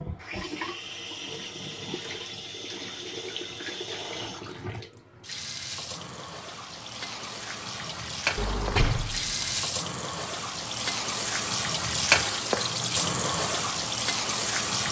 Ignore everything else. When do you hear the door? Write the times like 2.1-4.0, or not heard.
8.3-9.7.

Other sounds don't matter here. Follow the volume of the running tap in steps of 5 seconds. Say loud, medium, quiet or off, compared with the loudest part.
medium, medium, loud.